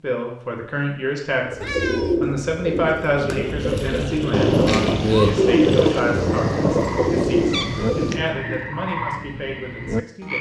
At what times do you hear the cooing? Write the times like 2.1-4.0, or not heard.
1.4-8.3.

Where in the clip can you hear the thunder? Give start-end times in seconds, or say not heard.
4.3-8.2.